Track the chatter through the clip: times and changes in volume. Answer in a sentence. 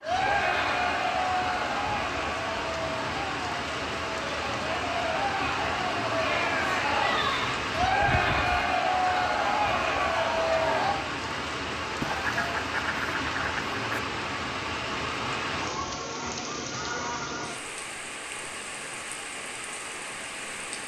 You can hear the chatter from 0.0 to 10.9 s, getting quieter then louder.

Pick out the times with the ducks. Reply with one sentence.
You can hear the ducks from 7.2 to 8.7 s and from 12.0 to 14.0 s.